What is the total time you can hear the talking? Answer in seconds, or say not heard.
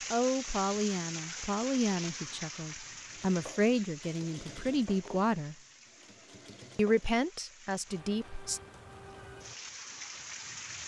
7 s.